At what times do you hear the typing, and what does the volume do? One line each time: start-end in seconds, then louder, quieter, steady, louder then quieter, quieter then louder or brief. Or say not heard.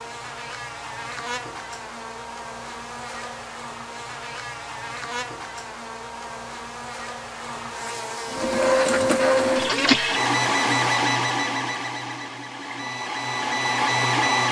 not heard.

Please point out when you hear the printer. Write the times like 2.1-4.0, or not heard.
8.2-14.4.